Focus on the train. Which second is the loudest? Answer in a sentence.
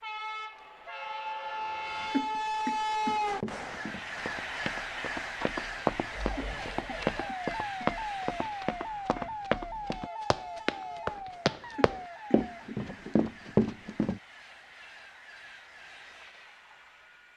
The loudest moment of the train is at 3 seconds.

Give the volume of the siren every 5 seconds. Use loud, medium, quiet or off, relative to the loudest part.
off, loud, loud, off.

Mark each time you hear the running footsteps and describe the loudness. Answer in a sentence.
The running footsteps can be heard from 3.0 to 14.2 s, getting louder.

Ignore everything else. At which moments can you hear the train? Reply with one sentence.
You can hear the train from 0.0 to 17.3 s.